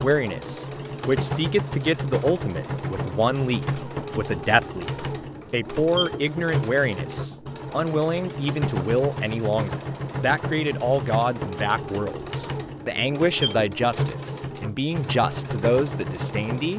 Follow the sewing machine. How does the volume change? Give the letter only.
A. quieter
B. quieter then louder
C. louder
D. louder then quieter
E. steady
E.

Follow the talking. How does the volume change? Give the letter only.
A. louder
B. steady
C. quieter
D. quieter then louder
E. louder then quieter
B.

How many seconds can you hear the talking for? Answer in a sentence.
You can hear the talking for 17 seconds altogether.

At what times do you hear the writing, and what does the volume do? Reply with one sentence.
You can't hear the writing here.